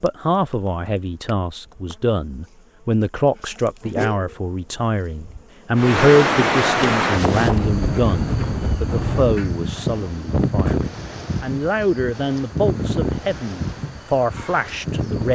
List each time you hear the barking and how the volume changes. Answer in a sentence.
You can't hear the barking here.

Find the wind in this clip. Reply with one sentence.
You can hear the wind from 5.8 to 15.2 s.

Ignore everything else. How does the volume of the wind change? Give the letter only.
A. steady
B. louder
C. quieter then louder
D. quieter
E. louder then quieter
D.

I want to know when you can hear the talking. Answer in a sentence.
The talking can be heard from 0.0 to 15.2 s.